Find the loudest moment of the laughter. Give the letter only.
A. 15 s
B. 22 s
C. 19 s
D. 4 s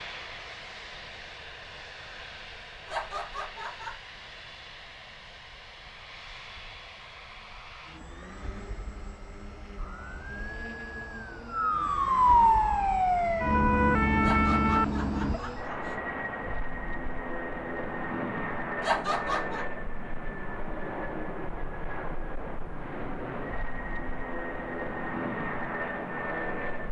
C.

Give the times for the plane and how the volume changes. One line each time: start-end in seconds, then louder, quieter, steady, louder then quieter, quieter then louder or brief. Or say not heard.
0.0-26.8 louder.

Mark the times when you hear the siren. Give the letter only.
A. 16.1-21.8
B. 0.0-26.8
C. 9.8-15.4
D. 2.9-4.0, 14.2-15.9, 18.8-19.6
C.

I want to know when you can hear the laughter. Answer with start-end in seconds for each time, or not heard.
2.9-4.0, 14.2-15.9, 18.8-19.6.